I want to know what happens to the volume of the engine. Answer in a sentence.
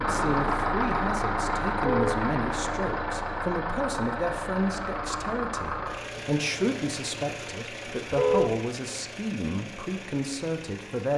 The loudness of the engine goes down.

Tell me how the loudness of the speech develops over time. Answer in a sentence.
The volume of the speech stays about the same.